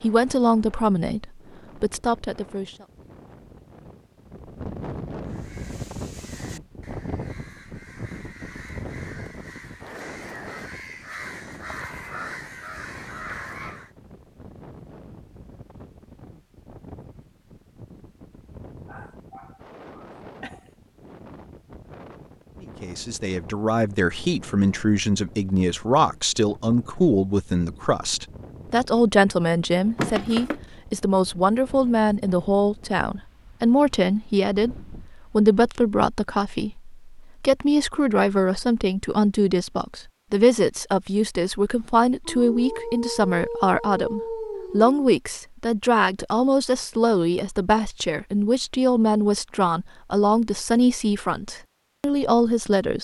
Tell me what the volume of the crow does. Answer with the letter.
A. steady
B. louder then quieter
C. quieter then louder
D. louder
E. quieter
D.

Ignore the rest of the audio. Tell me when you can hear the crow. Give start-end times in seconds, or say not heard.
5.2-13.9.